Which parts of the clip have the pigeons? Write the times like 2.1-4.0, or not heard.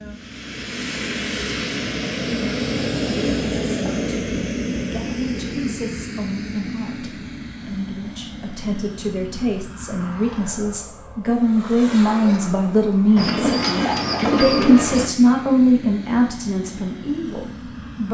13.2-15.1.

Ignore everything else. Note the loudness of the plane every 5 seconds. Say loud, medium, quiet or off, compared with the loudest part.
loud, medium, medium, medium.